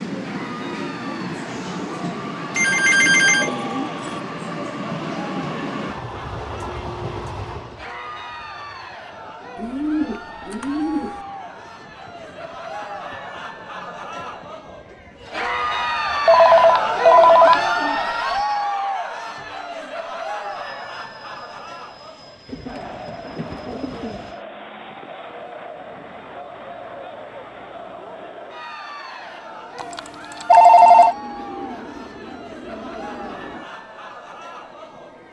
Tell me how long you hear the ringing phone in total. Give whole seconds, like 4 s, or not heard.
4 s.